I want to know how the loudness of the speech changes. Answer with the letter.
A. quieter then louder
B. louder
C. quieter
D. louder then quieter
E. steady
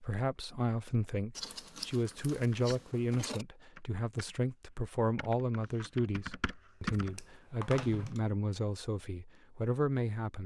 E.